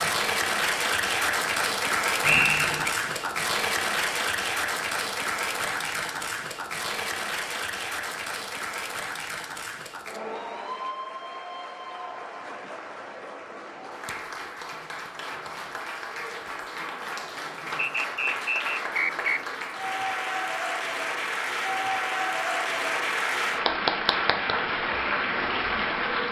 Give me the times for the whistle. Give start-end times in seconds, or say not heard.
2.2-2.9, 17.8-19.4.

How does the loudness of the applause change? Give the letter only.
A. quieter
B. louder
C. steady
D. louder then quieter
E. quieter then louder
E.